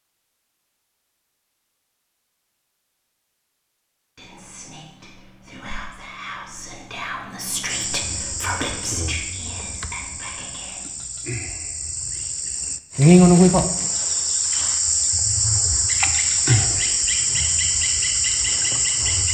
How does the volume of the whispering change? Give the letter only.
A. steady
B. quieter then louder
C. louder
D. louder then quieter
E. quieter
D.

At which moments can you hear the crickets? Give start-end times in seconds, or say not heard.
7.7-19.2.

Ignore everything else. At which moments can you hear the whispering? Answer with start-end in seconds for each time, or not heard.
4.2-10.8.